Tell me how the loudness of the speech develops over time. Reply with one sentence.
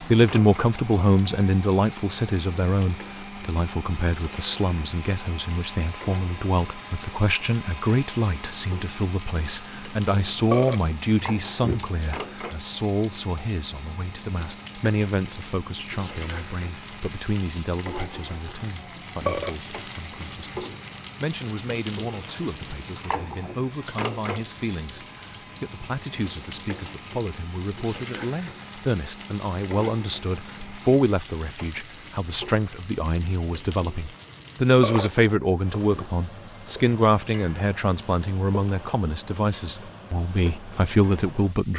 The volume of the speech goes down, then up.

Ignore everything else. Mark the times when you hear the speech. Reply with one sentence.
The speech can be heard from 0.0 to 41.7 s.